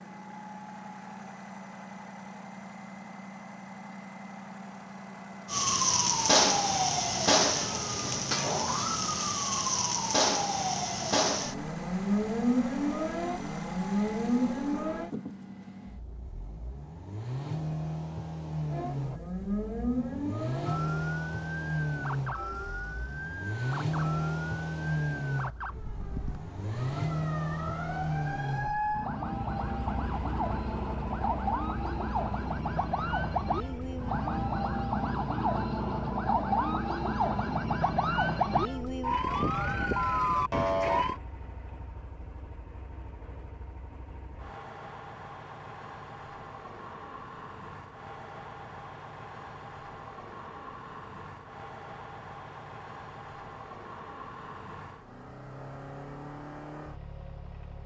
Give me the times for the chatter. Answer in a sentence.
The chatter can't be heard in this clip.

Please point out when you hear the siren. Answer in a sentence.
The siren can be heard from 5.5 to 15.1 s and from 18.7 to 41.1 s.